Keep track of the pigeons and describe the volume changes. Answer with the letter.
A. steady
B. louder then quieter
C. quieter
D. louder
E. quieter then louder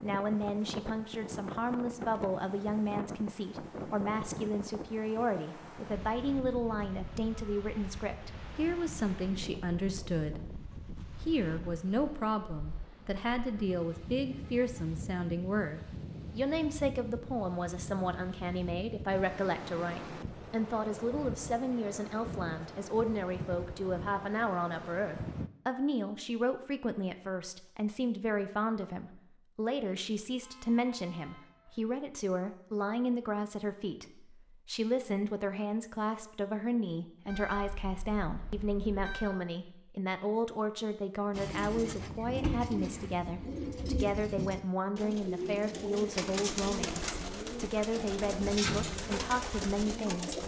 A.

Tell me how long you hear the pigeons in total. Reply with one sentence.
You can hear the pigeons for 9 seconds altogether.